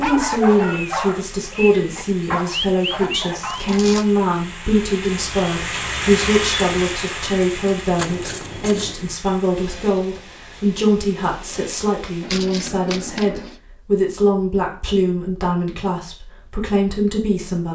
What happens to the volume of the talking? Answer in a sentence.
The volume of the talking stays about the same.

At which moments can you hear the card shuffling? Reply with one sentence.
You can hear the card shuffling from 3.4 to 4.2 s, from 8.0 to 8.9 s and from 12.2 to 13.6 s.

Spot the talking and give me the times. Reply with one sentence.
You can hear the talking from 0.0 to 17.7 s.